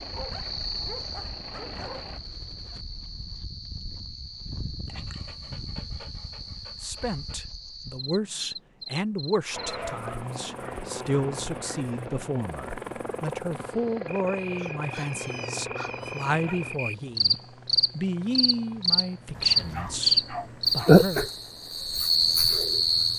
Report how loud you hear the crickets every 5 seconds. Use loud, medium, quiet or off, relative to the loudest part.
quiet, quiet, quiet, medium, loud.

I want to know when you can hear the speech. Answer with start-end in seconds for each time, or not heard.
6.8-17.4, 17.9-21.2.